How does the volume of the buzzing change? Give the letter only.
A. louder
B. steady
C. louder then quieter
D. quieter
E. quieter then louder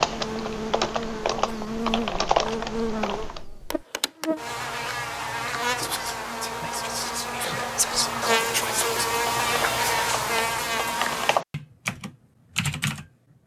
A.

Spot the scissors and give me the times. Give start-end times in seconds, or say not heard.
not heard.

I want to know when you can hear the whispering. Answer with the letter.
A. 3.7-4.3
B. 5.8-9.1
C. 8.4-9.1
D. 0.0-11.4
B.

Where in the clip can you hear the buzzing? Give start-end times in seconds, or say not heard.
0.0-11.4.